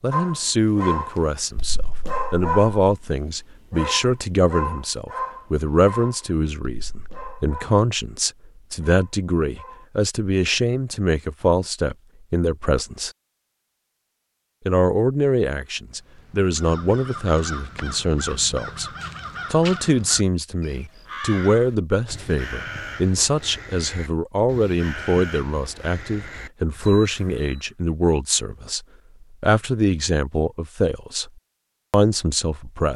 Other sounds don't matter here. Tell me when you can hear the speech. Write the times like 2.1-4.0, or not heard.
0.0-13.1, 14.7-18.9, 19.5-31.3, 31.9-32.9.